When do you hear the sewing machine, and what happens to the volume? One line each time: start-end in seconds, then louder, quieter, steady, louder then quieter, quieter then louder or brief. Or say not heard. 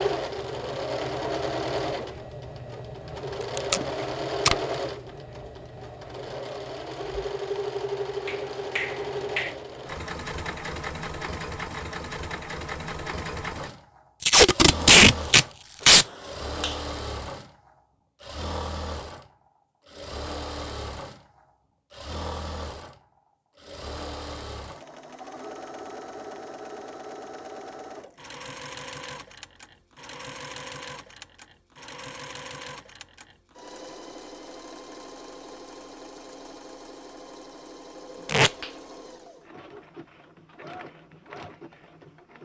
0.0-42.4 quieter.